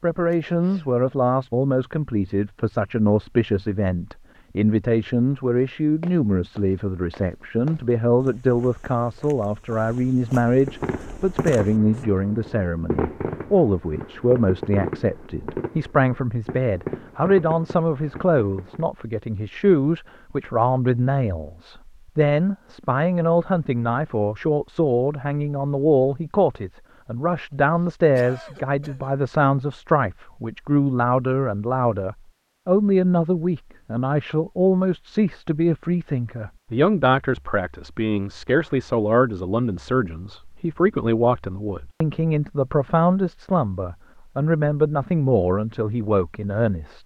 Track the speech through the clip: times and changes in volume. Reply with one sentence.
You can hear the speech from 0.0 to 47.0 s, at a steady volume.